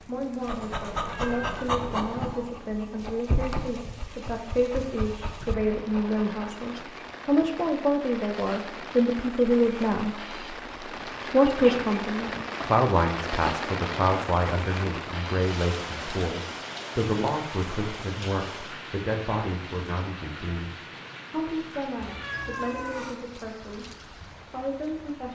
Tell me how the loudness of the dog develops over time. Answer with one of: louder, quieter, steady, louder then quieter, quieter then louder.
quieter.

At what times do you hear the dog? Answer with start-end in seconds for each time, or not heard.
0.4-6.5.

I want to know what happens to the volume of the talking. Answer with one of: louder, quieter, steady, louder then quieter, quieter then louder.
louder then quieter.